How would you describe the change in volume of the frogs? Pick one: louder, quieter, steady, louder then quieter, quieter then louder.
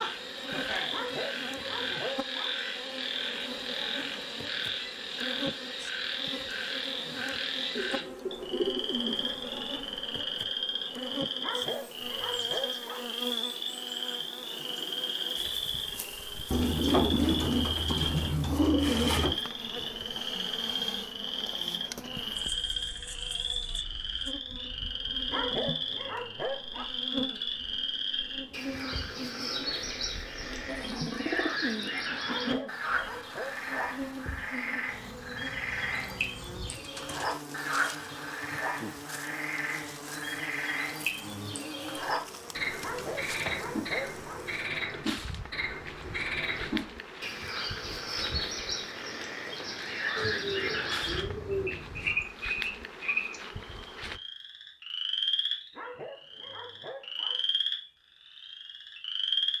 steady.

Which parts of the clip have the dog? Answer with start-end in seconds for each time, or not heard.
0.9-2.5, 11.4-13.1, 25.3-26.9, 32.2-33.6, 42.8-44.5, 55.7-57.4.